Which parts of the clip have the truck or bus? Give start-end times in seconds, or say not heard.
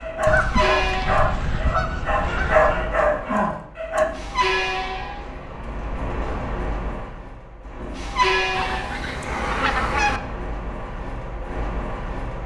0.0-12.4.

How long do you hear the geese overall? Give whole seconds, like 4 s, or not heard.
4 s.